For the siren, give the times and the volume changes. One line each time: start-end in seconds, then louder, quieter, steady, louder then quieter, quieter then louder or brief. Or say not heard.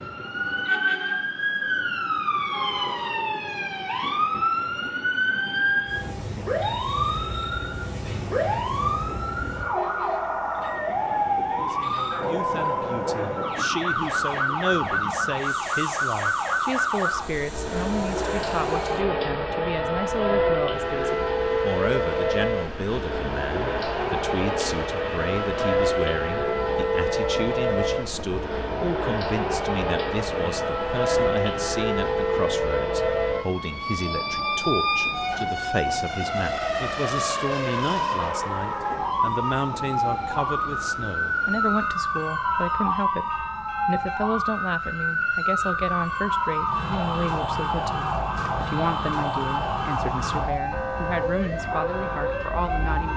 0.0-53.1 steady.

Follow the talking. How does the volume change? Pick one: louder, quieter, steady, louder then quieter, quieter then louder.
steady.